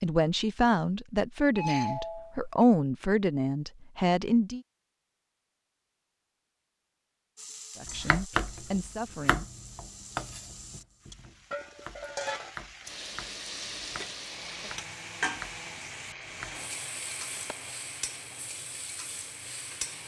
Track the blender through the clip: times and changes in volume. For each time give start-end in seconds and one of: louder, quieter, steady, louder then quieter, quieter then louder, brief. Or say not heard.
14.2-20.0 quieter.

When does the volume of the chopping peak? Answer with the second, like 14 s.
8 s.